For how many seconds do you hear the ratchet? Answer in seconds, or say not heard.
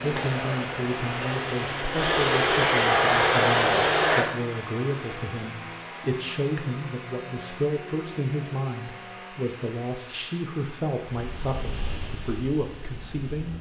not heard.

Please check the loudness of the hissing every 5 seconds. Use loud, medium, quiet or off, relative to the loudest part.
loud, off, quiet.